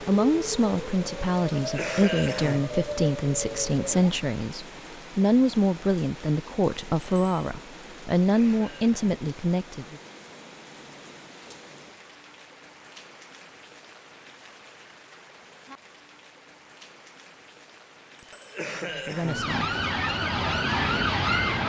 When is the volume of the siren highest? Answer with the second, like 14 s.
21 s.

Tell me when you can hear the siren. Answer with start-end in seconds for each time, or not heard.
0.0-4.2, 19.2-21.6.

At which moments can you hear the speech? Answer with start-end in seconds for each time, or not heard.
0.0-10.0, 18.6-19.8.